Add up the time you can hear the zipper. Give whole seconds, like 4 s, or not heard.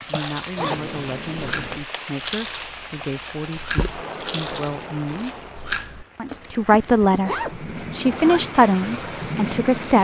3 s.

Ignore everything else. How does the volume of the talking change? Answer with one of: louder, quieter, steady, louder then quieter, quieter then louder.
louder.